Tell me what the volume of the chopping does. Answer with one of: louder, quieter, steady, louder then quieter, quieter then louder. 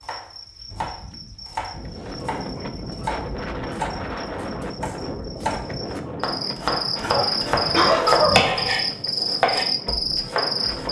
louder.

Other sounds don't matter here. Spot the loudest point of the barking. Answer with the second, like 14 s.
8 s.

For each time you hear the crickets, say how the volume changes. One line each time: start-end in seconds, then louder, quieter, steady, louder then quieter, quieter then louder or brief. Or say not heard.
0.0-10.8 louder.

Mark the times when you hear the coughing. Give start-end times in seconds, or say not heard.
7.2-8.2.